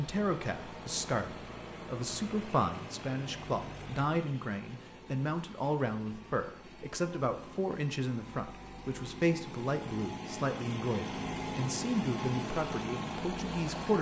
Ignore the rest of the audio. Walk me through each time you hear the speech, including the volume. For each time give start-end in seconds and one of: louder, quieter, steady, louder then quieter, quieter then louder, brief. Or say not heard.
0.0-13.9 steady.